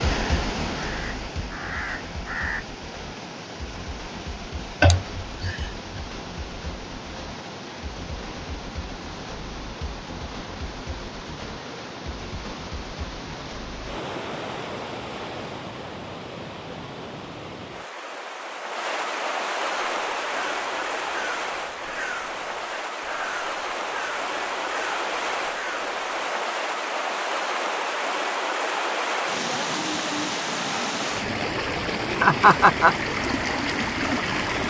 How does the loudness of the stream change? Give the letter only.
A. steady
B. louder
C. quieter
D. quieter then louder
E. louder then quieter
B.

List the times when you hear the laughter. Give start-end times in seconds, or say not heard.
4.8-6.0, 32.2-33.0.